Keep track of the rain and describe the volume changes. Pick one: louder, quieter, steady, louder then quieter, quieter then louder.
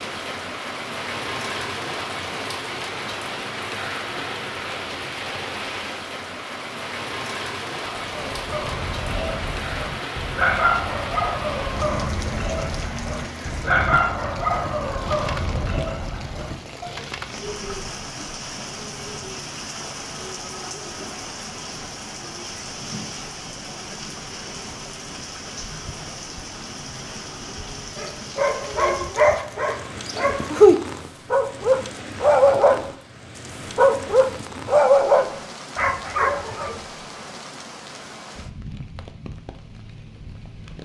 quieter.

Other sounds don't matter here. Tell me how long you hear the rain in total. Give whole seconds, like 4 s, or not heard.
41 s.